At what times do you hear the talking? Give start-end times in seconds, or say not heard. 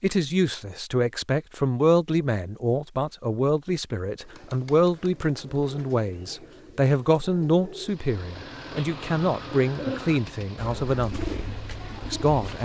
0.0-12.6.